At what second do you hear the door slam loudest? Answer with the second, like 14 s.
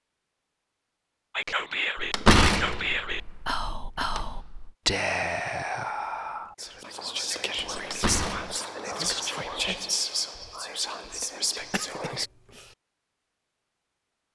2 s.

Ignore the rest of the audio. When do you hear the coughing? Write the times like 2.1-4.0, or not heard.
11.6-12.8.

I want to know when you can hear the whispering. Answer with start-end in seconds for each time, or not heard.
1.4-12.3.